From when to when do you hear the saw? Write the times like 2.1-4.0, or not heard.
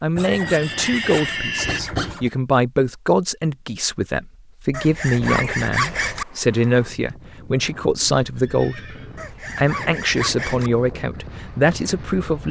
0.1-2.3, 4.7-6.2, 9.2-10.7.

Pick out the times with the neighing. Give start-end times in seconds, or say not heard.
0.2-1.8, 5.2-6.2, 8.3-9.3.